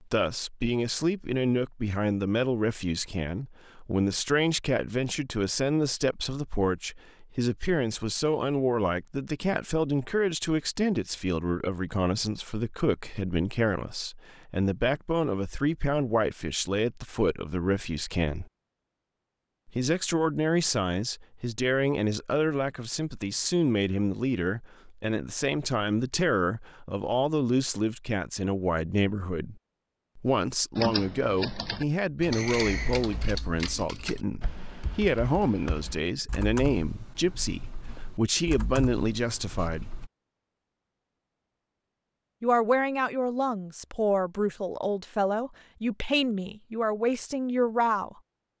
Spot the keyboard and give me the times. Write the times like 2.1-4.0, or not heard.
30.8-40.1.